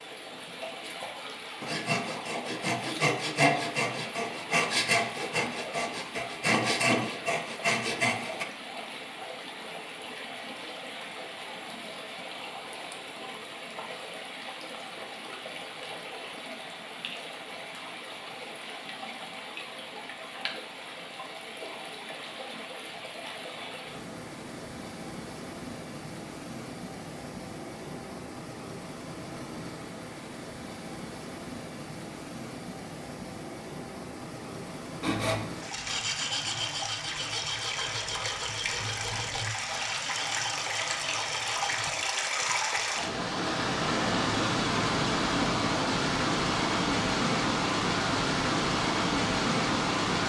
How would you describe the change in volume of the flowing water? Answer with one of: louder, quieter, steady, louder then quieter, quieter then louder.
louder.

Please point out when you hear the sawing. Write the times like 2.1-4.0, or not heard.
1.6-8.4, 35.0-41.9.